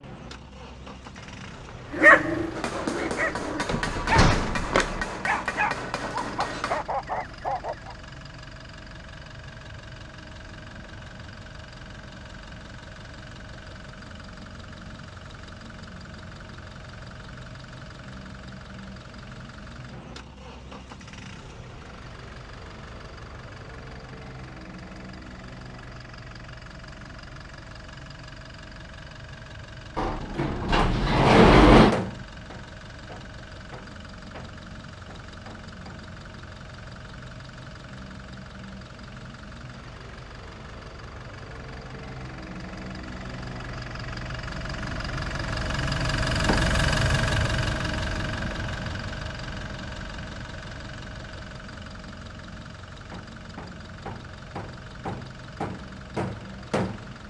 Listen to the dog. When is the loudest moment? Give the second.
2 s.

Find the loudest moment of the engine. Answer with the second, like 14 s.
47 s.